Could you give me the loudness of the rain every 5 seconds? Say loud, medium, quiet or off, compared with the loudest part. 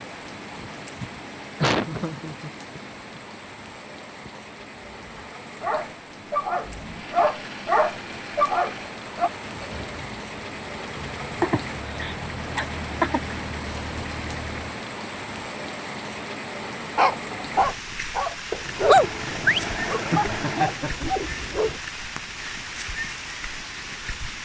medium, medium, loud, loud, loud.